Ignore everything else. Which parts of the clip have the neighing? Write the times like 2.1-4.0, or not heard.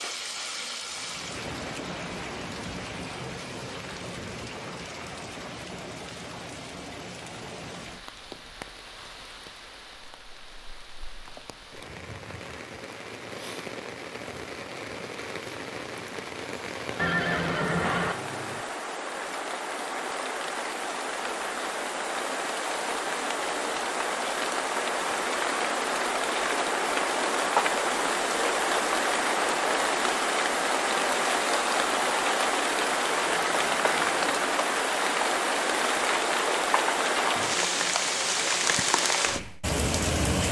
16.9-18.1, 33.2-34.4.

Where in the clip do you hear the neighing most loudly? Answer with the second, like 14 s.
17 s.